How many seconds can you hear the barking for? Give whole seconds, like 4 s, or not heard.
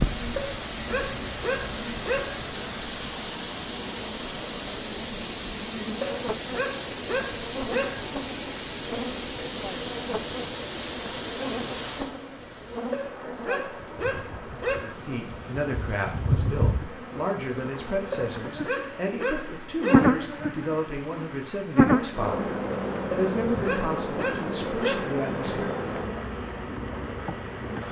10 s.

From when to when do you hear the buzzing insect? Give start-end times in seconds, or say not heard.
0.0-27.8.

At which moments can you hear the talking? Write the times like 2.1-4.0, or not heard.
14.7-26.1.